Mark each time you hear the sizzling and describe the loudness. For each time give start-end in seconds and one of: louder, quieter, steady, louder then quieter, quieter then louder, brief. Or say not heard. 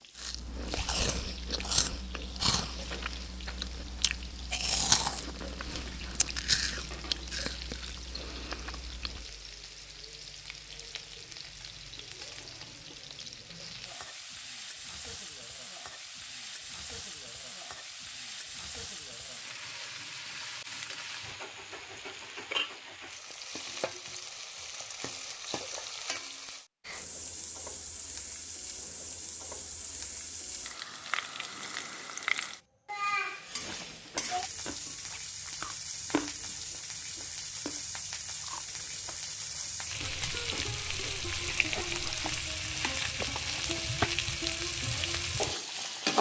0.0-46.1 louder.